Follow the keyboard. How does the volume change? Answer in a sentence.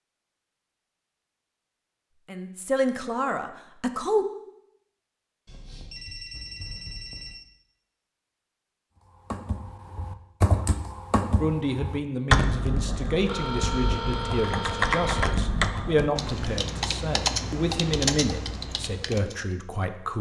The volume of the keyboard stays about the same.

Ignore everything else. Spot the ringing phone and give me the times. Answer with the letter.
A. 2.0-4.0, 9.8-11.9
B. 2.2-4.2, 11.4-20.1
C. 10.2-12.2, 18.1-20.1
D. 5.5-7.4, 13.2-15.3
D.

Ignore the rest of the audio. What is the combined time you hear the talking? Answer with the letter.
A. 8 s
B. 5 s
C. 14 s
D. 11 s
D.